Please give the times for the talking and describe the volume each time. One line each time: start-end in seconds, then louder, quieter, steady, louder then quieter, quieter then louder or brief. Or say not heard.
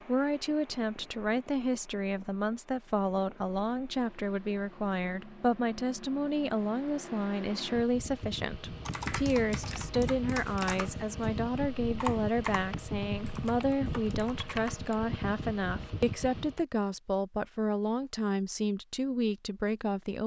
0.1-20.2 steady.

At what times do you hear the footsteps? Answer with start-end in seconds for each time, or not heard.
not heard.